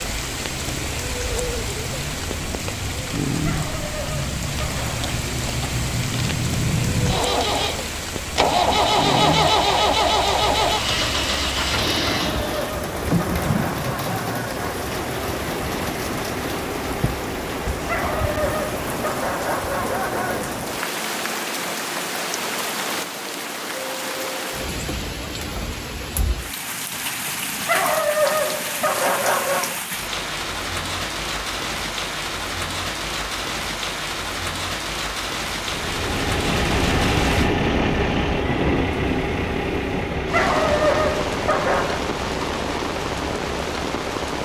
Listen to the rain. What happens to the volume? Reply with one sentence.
The volume of the rain stays about the same.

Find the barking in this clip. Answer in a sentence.
The barking can be heard from 3.5 to 5.2 s, from 12.2 to 14.8 s, from 17.9 to 20.6 s, from 27.6 to 29.8 s and from 40.3 to 42.0 s.